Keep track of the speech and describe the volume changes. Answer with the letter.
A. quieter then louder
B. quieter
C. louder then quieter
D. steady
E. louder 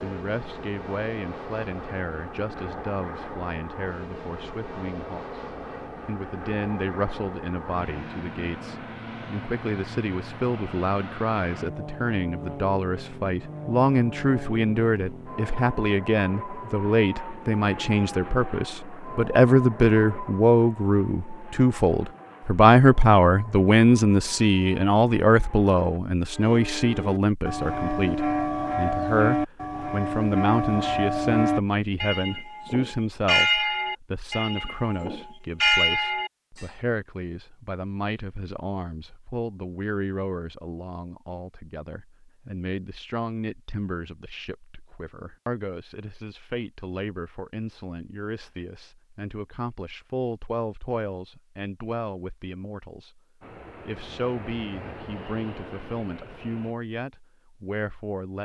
C.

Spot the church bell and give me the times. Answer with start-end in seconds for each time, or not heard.
26.4-36.6.